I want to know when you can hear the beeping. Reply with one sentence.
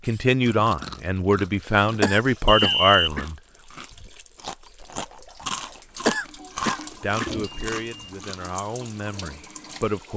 You can hear the beeping from 2.5 to 3.1 s and from 7.2 to 8.2 s.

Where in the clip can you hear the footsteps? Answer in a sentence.
You can't hear the footsteps here.